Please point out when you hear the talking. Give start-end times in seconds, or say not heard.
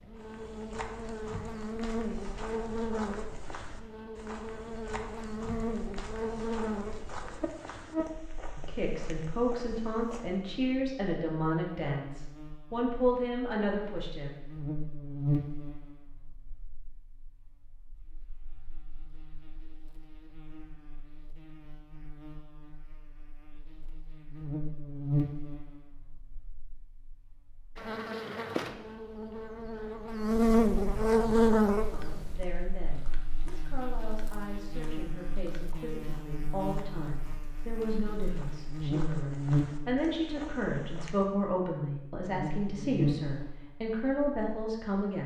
8.6-14.3, 31.9-45.2.